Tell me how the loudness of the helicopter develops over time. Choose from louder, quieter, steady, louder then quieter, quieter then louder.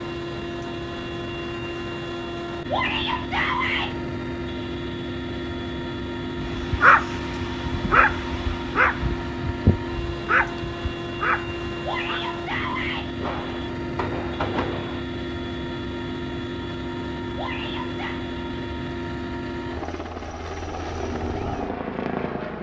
steady.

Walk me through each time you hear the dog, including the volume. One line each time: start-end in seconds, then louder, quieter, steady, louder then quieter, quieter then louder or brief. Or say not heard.
6.4-12.2 quieter.